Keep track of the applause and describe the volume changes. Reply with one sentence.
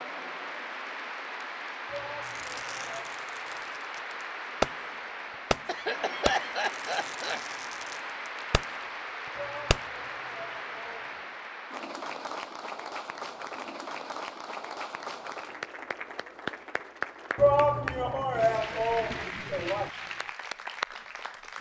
The loudness of the applause stays about the same.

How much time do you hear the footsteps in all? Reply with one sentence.
You can't hear the footsteps here.